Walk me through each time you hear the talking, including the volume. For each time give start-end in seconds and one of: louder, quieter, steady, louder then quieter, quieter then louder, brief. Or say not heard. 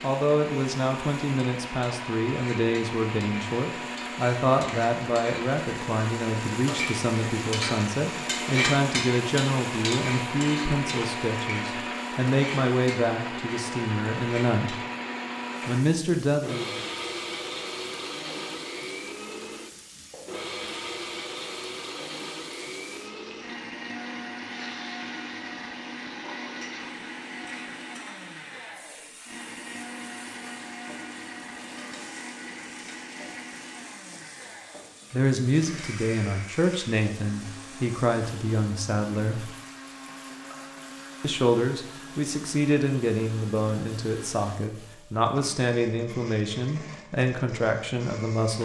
0.0-14.8 steady
15.7-16.8 brief
35.1-39.5 steady
41.2-48.6 steady.